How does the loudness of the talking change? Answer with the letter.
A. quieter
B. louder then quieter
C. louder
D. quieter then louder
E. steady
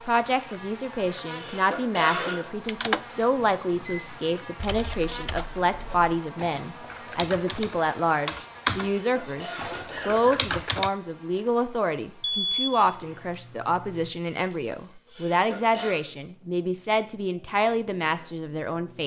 E.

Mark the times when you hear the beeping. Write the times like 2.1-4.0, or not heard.
3.1-4.3, 12.2-14.1.